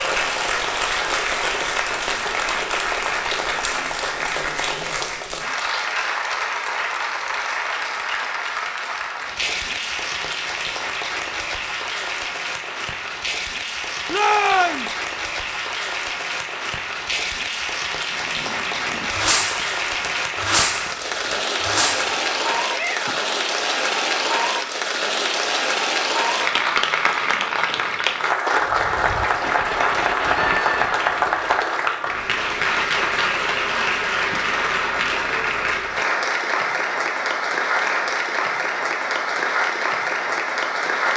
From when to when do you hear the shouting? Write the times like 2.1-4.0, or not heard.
14.1-14.9, 22.6-23.3.